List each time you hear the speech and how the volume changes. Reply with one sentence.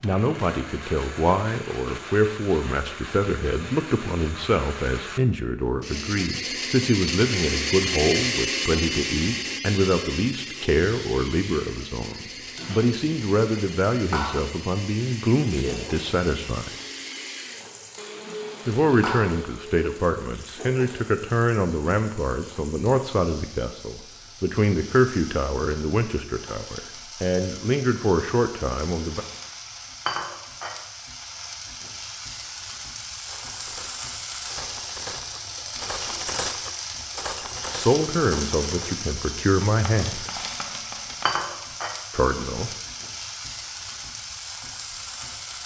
The speech can be heard from 0.0 to 16.7 s, at a steady volume; from 18.6 to 29.2 s, at a steady volume; briefly from 37.7 to 40.3 s; and briefly from 42.1 to 42.7 s.